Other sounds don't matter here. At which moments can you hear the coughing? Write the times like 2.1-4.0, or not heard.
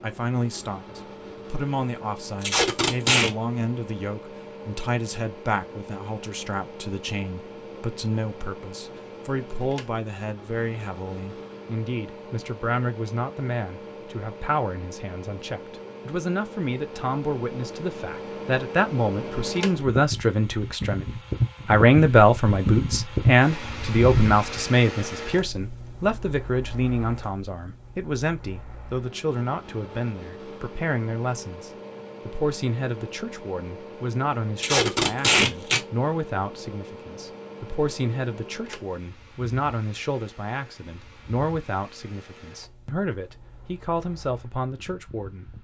not heard.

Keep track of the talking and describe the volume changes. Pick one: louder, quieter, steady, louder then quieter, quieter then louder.
louder then quieter.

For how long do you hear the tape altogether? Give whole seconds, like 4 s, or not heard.
2 s.